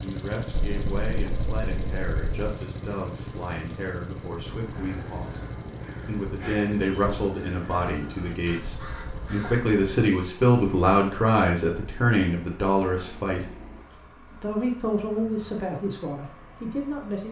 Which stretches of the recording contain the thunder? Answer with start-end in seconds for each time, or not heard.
0.5-2.5.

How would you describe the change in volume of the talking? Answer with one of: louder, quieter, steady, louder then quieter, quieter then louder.
louder then quieter.